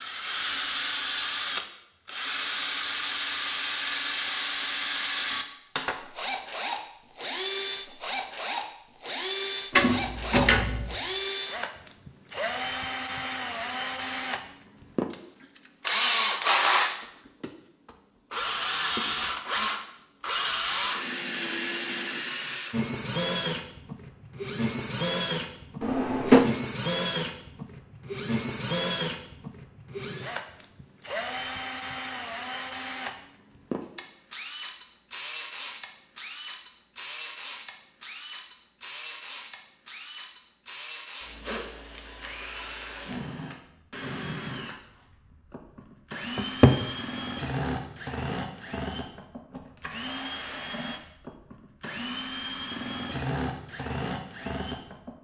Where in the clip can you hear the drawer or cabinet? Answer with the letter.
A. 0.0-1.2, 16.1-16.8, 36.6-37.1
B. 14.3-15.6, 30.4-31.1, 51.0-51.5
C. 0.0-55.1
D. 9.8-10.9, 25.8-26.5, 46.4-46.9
D.